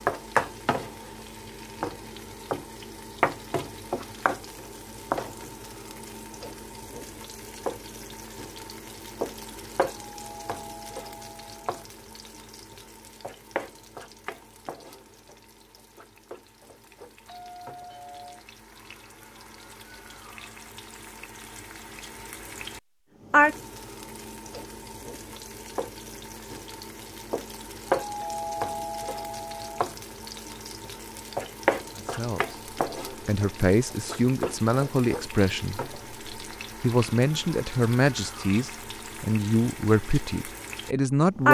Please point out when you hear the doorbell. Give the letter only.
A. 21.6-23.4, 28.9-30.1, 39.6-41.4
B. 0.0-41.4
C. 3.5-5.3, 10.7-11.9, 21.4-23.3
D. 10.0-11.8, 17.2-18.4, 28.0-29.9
D.